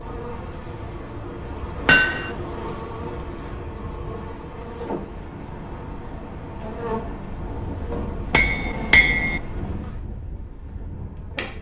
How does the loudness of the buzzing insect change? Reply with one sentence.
The volume of the buzzing insect goes down.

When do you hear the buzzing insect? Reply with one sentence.
The buzzing insect can be heard from 0.0 to 11.5 s.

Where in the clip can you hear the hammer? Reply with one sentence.
You can hear the hammer from 1.9 to 2.3 s and from 8.3 to 9.4 s.